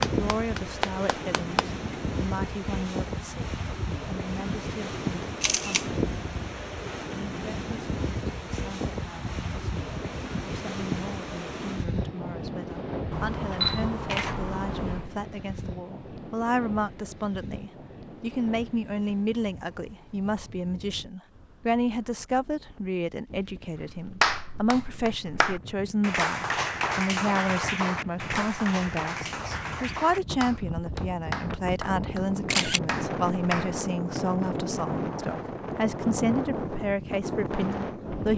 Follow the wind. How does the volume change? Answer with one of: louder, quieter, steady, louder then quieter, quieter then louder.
quieter then louder.